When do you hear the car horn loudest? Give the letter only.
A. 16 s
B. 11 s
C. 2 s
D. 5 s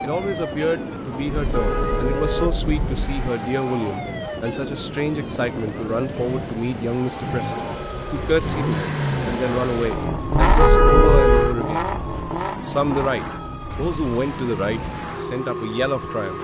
B.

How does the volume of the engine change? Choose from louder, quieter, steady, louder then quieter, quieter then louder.
louder then quieter.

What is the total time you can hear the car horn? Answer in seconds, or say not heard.
3 s.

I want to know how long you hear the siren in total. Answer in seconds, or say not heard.
16 s.